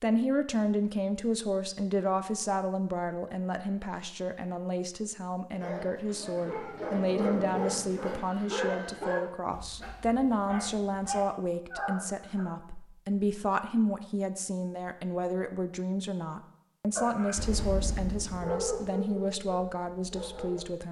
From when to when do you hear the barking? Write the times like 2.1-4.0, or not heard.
5.5-12.5, 16.9-20.6.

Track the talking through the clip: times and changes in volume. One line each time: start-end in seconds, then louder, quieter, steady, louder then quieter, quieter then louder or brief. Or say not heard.
0.0-20.8 steady.